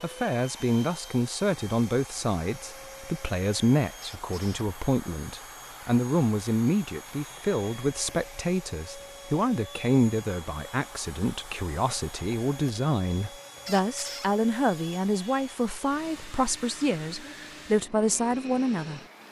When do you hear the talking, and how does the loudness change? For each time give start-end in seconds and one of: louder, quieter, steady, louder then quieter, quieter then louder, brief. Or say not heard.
0.0-19.0 steady.